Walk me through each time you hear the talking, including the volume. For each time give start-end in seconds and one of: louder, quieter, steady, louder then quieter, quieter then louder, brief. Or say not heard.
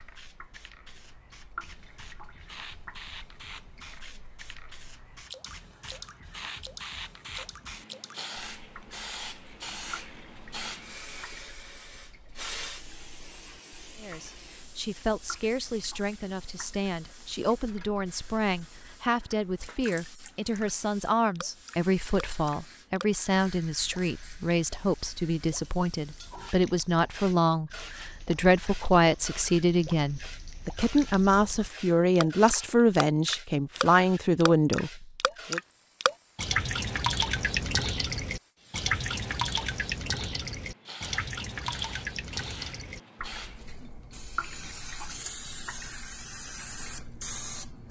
14.0-35.6 louder.